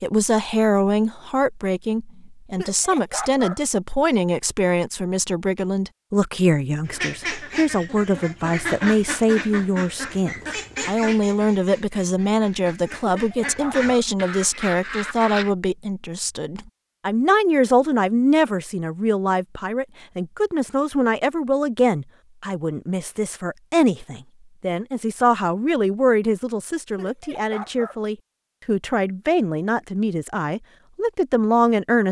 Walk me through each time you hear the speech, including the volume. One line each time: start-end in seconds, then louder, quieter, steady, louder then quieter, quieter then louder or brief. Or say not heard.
0.0-32.0 steady.